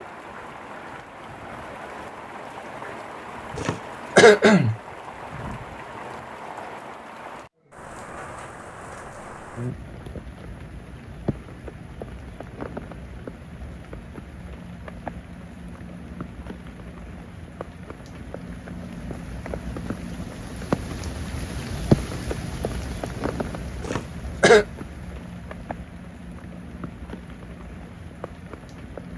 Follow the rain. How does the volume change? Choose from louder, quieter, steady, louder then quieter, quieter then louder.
louder then quieter.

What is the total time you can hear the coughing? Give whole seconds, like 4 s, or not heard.
2 s.